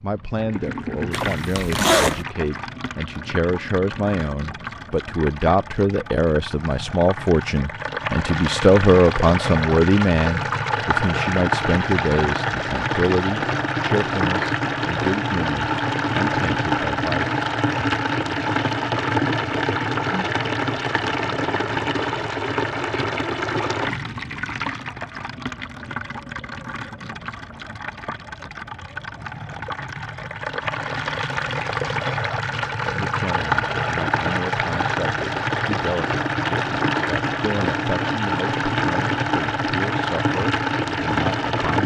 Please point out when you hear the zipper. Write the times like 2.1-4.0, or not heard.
1.1-2.2.